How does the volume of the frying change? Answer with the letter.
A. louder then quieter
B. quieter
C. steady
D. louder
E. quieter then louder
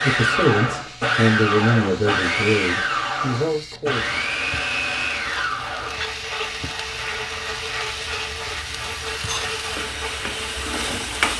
D.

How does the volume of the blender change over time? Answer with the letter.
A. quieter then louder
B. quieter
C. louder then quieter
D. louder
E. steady
B.